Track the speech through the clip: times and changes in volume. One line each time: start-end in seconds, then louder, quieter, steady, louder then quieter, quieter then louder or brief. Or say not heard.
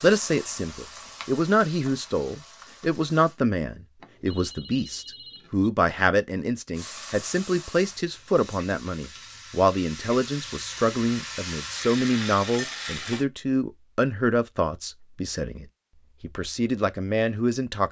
0.0-17.8 steady.